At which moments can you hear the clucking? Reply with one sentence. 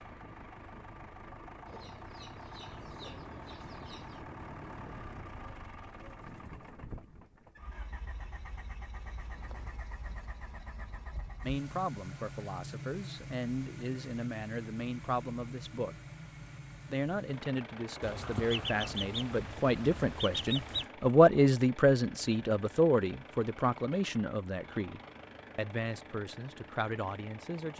The clucking can be heard from 1.6 to 4.2 s and from 18.0 to 20.9 s.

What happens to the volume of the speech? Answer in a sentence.
The loudness of the speech goes up, then down.